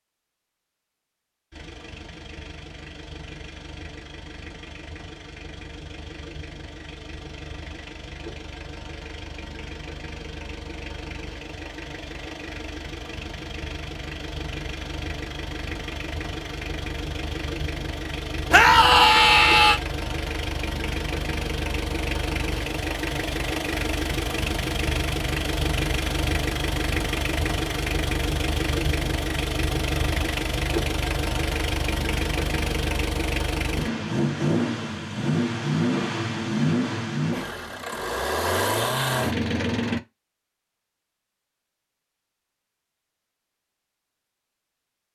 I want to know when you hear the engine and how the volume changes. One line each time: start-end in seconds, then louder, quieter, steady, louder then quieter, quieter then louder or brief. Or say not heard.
1.5-40.0 louder.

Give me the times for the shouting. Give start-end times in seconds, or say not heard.
18.5-19.8.